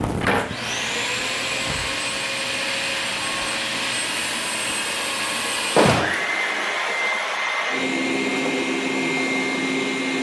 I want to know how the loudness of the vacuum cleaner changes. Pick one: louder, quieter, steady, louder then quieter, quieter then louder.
steady.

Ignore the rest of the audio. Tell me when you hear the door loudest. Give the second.
6 s.